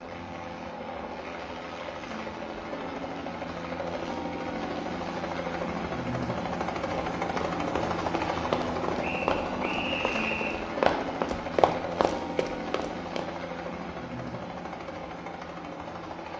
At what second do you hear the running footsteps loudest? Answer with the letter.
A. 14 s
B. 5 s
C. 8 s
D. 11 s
D.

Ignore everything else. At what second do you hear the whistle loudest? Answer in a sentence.
The volume of the whistle peaks at 10 seconds.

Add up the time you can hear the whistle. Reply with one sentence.
You can hear the whistle for 2 seconds altogether.